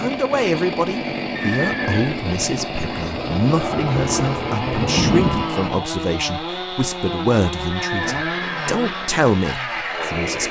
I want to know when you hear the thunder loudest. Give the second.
5 s.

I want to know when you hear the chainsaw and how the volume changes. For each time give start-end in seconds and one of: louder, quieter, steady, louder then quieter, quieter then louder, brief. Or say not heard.
0.0-10.4 steady.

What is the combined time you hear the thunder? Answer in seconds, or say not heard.
4 s.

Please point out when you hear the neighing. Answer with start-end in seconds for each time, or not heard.
1.4-2.1, 7.7-8.6.